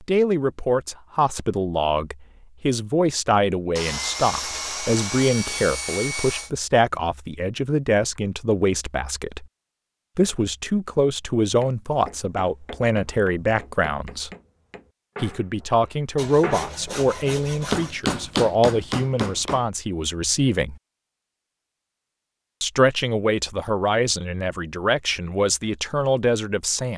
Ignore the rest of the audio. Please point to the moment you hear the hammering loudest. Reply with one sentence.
The loudest moment of the hammering is at 18 seconds.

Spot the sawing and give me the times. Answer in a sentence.
You can hear the sawing from 3.8 to 6.5 s and from 16.1 to 18.0 s.